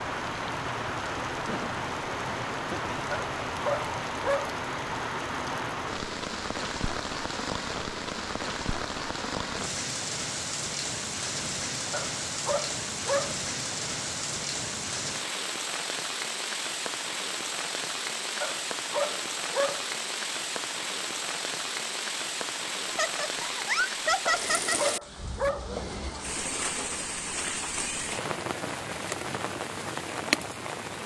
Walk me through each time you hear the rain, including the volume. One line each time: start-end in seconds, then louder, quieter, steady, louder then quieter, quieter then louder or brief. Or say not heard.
0.0-31.0 steady.